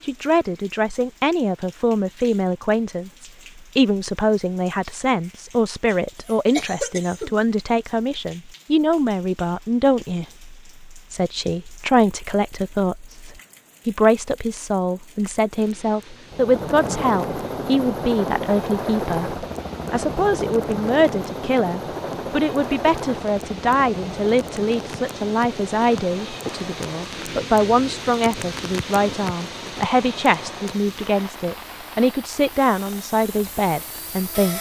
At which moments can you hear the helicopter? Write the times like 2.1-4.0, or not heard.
16.3-34.5.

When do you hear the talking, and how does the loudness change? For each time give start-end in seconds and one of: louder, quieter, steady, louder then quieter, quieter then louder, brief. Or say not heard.
0.0-34.5 steady.